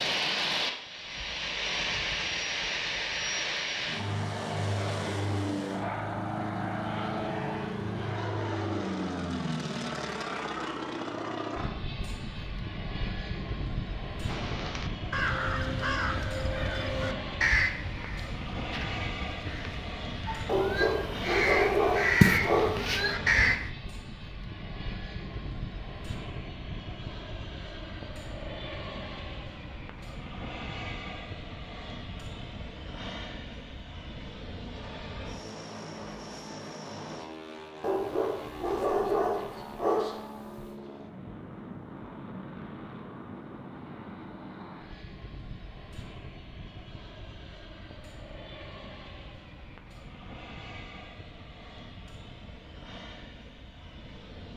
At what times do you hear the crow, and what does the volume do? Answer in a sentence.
You can hear the crow from 14.2 to 23.7 s, getting quieter then louder.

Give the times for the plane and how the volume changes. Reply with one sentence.
The plane can be heard from 0.0 to 54.5 s, getting quieter.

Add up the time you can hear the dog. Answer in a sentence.
You can hear the dog for 5 seconds altogether.